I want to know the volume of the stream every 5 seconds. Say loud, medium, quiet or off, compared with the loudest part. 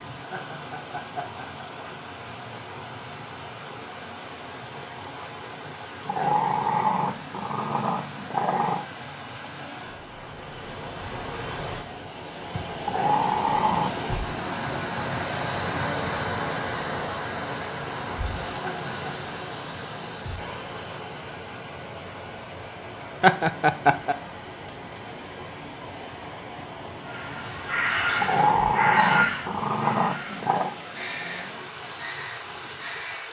medium, medium, loud, loud, medium, medium, medium.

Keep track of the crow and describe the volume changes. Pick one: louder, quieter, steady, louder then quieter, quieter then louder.
quieter.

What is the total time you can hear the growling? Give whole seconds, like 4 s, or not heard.
7 s.